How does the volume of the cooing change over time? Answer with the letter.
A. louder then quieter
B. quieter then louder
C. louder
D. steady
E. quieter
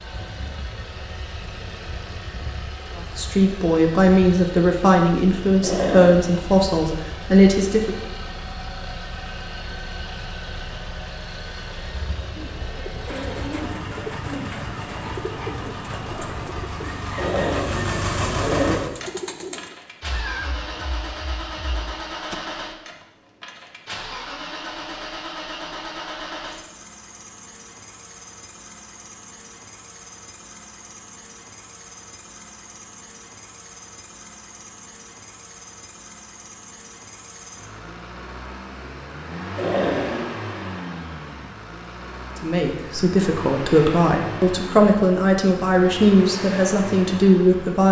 E.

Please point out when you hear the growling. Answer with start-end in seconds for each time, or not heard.
5.6-6.2, 17.1-18.8, 39.5-40.3.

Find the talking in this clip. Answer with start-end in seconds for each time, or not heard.
3.0-8.0, 42.4-47.8.